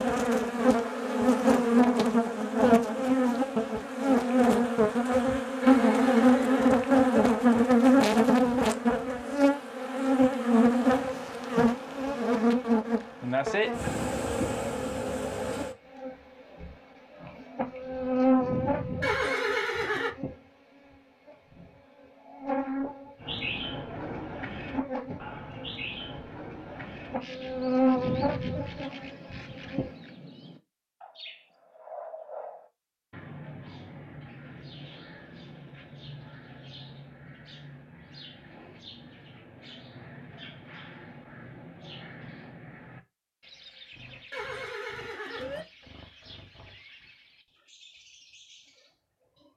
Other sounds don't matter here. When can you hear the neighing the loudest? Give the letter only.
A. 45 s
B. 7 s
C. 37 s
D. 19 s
D.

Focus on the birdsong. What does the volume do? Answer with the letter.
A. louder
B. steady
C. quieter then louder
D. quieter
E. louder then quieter
D.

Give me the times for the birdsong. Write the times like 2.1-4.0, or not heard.
23.2-49.5.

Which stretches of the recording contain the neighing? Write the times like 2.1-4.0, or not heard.
5.6-6.7, 19.0-20.1, 44.3-45.6.